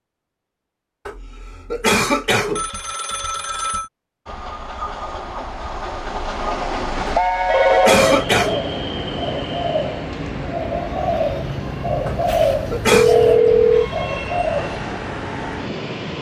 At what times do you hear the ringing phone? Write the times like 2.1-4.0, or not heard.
2.5-3.9, 7.5-8.2, 12.9-13.9.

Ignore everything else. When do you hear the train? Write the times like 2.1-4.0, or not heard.
4.2-16.1.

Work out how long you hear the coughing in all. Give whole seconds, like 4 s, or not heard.
4 s.